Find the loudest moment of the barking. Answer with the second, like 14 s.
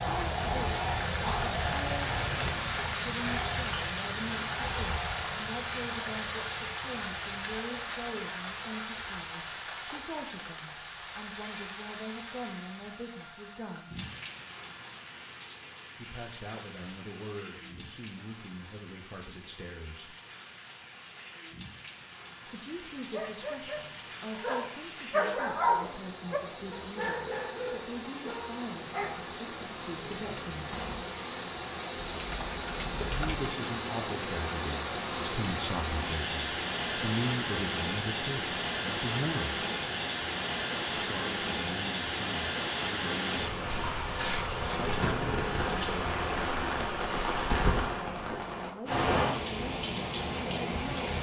26 s.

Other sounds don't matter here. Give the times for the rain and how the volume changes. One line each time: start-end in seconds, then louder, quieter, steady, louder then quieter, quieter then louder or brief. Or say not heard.
0.0-51.1 quieter then louder.